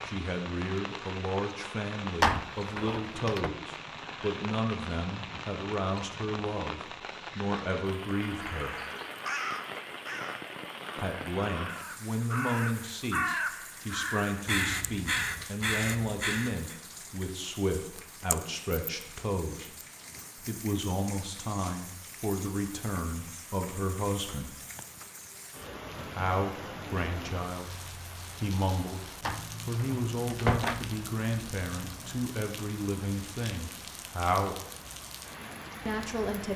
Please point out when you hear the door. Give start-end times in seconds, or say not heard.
2.2-3.5, 29.2-30.9.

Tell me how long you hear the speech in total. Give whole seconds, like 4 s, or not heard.
31 s.